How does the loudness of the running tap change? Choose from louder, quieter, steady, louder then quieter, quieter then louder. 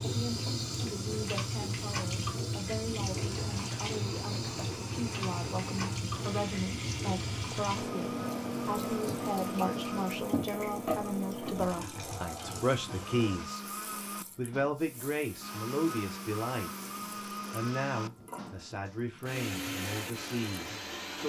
quieter.